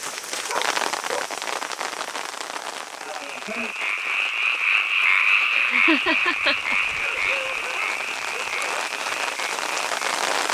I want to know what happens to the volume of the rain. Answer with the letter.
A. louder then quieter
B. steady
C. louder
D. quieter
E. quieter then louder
E.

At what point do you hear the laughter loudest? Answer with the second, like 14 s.
6 s.